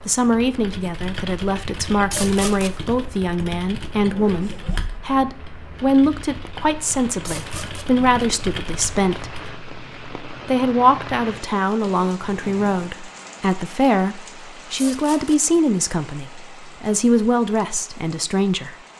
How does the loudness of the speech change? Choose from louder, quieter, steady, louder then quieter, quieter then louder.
steady.